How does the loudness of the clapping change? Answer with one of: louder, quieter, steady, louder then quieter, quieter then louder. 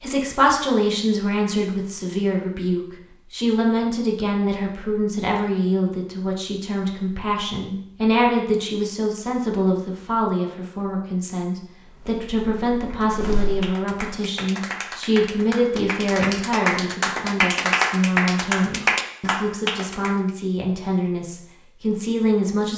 louder.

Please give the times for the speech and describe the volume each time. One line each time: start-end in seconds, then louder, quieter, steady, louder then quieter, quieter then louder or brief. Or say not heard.
0.0-22.7 steady.